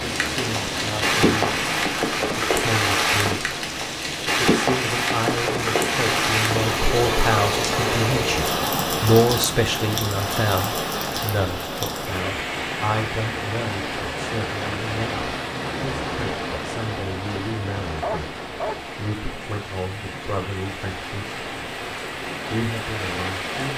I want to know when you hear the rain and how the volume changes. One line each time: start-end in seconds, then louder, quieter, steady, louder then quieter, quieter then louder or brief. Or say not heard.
0.0-23.7 quieter.